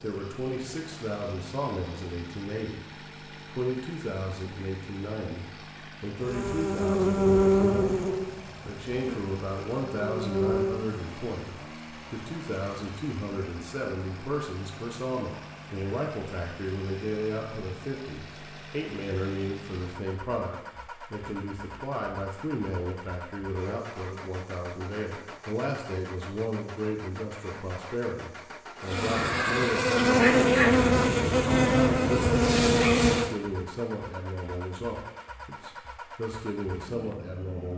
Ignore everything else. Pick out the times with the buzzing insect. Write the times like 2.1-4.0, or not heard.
6.2-10.8, 28.8-33.4.